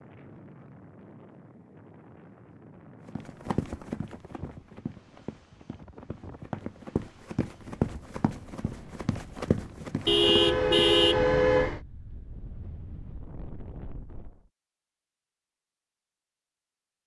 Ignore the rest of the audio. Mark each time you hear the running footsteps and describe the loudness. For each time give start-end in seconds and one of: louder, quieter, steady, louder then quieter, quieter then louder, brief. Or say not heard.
3.0-10.8 quieter then louder.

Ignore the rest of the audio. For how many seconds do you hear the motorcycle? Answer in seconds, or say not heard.
not heard.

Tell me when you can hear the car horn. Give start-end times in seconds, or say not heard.
10.1-11.8.